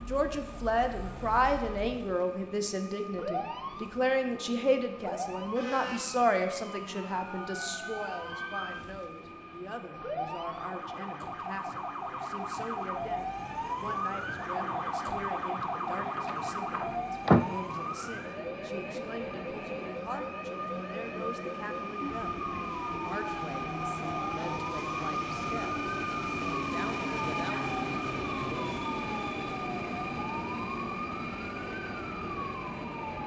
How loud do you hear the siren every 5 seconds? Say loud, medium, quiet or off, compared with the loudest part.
medium, medium, loud, loud, medium, medium, medium.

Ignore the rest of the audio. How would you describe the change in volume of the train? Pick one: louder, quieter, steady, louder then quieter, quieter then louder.
louder.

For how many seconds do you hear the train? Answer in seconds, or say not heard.
33 s.